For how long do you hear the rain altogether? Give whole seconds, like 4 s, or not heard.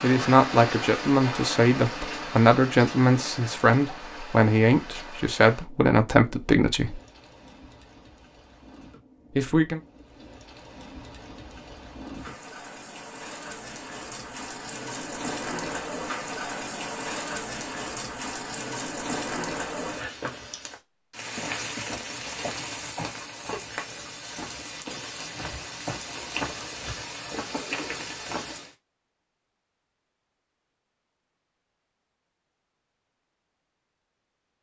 29 s.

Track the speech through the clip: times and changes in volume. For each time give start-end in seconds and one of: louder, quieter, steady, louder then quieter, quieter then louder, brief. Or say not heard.
0.0-7.0 steady
9.3-9.8 brief.